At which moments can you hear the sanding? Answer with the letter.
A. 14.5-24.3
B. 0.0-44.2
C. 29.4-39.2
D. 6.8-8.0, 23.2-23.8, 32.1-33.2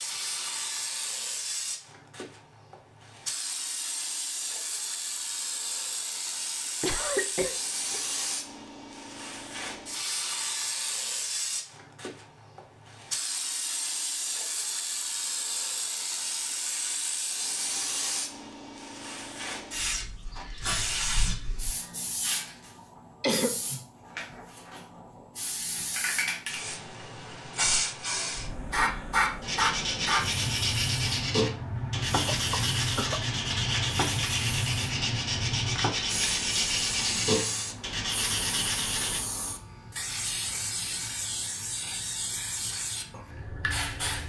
C.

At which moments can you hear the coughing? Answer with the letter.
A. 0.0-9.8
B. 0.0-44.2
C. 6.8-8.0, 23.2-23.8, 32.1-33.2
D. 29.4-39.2
C.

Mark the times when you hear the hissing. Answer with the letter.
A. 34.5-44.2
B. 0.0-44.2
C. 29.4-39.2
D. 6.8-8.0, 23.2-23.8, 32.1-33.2
B.